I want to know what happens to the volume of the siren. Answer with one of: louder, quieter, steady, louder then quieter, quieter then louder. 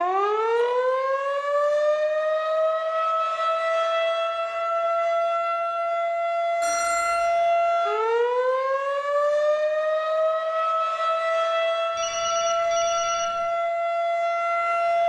steady.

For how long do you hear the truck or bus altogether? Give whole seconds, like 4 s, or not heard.
not heard.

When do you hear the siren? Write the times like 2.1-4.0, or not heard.
0.0-15.0.